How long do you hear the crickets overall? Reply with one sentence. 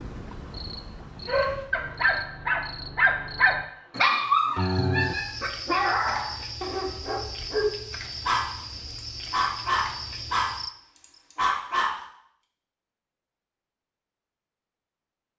You can hear the crickets for 11 seconds altogether.